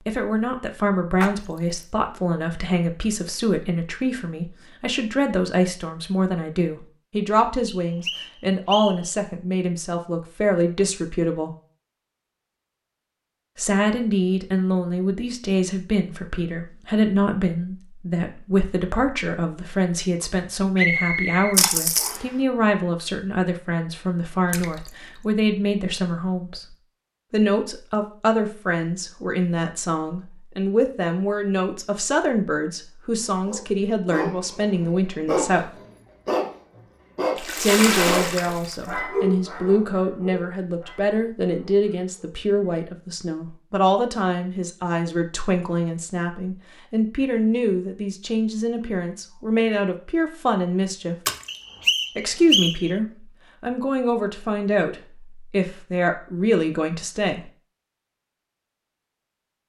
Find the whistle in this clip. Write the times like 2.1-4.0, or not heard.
7.7-9.1, 20.8-22.4, 51.5-52.9.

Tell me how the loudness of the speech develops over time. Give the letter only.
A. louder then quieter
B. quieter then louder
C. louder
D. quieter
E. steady
E.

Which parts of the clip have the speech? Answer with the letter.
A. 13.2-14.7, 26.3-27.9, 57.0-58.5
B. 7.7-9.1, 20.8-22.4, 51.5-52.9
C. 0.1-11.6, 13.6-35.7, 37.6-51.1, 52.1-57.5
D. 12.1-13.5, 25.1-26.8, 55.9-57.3
C.